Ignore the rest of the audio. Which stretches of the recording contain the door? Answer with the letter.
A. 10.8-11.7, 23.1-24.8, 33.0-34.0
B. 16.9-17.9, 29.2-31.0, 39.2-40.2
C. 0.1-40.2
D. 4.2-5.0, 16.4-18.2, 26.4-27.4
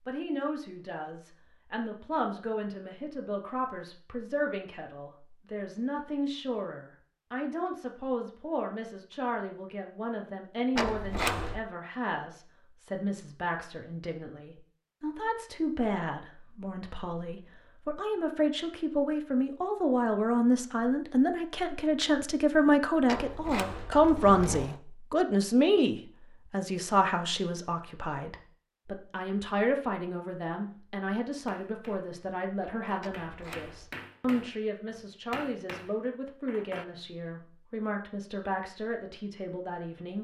A.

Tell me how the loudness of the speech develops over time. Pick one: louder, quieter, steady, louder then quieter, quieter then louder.
louder then quieter.